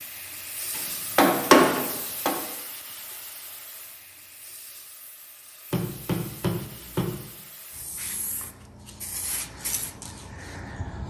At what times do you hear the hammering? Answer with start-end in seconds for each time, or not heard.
0.8-2.4, 5.7-7.2.